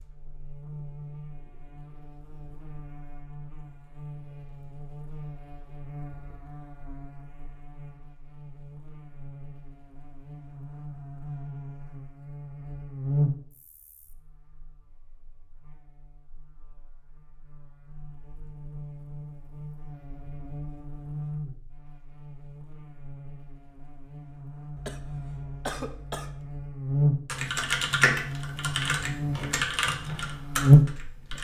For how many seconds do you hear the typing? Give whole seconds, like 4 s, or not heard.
4 s.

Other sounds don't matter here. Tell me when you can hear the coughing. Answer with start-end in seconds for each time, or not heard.
24.8-26.6.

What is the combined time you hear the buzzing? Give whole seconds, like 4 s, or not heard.
31 s.